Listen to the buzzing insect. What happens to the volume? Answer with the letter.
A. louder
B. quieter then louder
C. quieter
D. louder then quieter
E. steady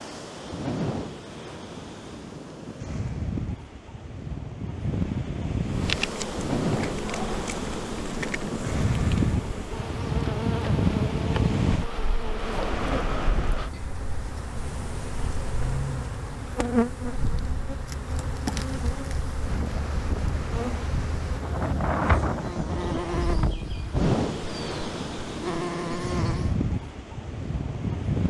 E.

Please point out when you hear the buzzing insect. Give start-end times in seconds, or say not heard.
5.6-26.6.